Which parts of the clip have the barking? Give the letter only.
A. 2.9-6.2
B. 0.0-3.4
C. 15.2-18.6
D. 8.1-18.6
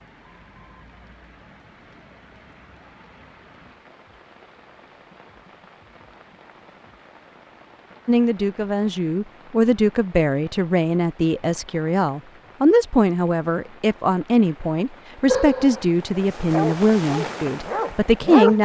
C.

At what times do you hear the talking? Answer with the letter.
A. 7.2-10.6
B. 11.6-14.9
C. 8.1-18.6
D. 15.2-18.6
C.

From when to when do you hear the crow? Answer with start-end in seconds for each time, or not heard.
not heard.